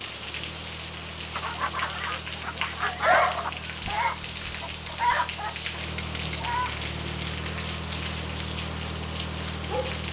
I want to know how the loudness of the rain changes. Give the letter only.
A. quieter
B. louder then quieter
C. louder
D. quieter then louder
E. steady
E.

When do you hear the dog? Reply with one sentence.
You can hear the dog from 2.9 to 4.0 s.